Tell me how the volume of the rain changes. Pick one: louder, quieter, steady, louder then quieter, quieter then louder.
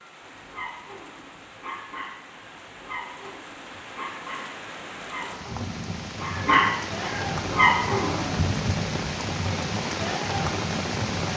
louder.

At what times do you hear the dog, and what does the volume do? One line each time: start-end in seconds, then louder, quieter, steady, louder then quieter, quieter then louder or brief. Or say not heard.
0.3-8.4 louder.